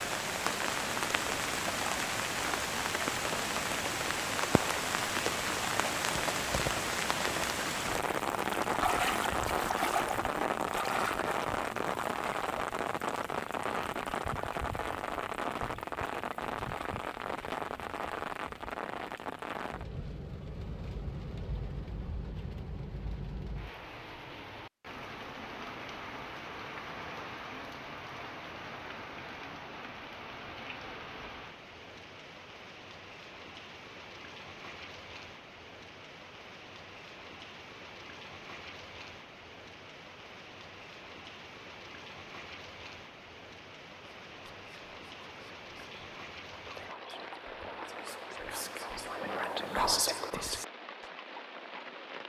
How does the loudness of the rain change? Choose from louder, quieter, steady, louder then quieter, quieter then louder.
quieter.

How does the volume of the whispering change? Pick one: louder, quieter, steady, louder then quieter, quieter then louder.
louder.